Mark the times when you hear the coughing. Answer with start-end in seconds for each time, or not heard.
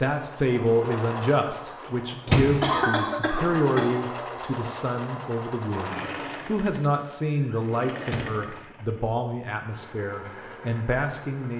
2.6-3.9.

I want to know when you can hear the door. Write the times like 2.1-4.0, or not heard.
2.2-2.8, 8.1-8.6.